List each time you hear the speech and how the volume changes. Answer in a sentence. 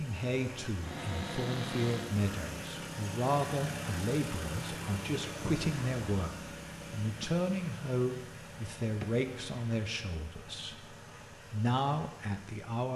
You can hear the speech from 0.0 to 12.9 s, at a steady volume.